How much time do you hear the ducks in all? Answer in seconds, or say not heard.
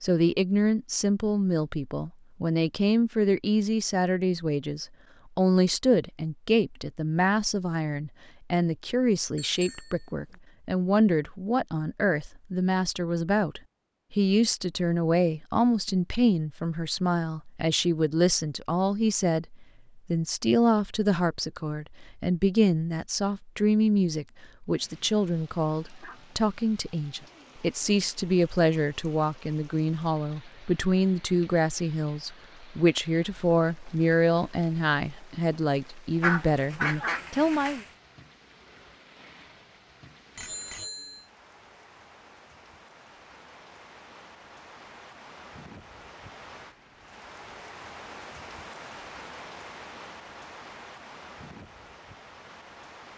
2 s.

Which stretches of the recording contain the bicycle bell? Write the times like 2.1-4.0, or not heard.
9.3-10.4, 40.4-41.2.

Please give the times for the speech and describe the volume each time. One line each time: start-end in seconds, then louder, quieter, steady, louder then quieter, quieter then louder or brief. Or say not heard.
0.0-37.8 steady.